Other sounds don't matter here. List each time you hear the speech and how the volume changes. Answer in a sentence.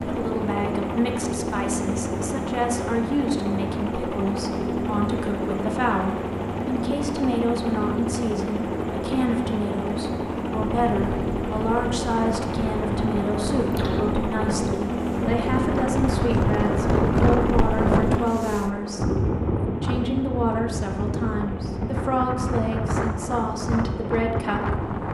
You can hear the speech from 0.0 to 24.9 s, at a steady volume.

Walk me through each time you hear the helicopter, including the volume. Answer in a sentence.
You can hear the helicopter from 0.0 to 25.0 s, getting quieter.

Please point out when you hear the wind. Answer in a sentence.
You can hear the wind from 10.8 to 25.0 s.